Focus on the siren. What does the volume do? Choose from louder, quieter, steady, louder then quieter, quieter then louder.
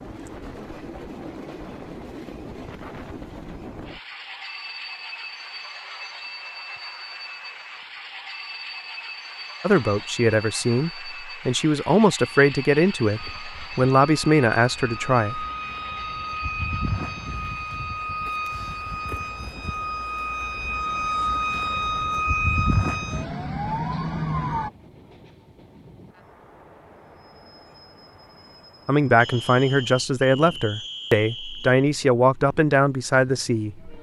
louder.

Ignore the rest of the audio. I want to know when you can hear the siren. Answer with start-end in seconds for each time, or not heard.
13.2-24.7.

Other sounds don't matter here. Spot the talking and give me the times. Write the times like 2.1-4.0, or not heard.
9.6-15.4, 28.9-33.9.